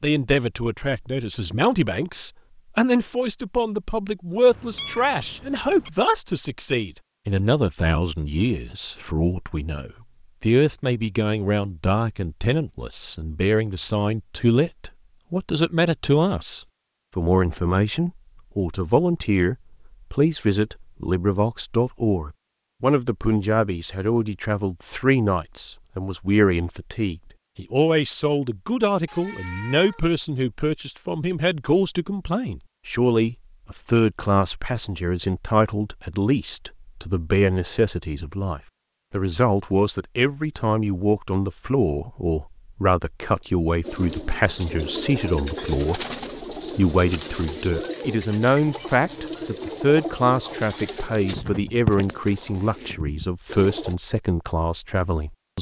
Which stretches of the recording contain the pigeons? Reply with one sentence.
The pigeons can be heard from 43.8 to 54.0 s.